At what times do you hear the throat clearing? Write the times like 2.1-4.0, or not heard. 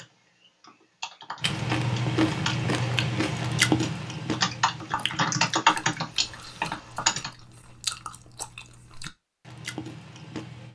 not heard.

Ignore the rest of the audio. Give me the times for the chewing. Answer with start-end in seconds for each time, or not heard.
1.4-10.6.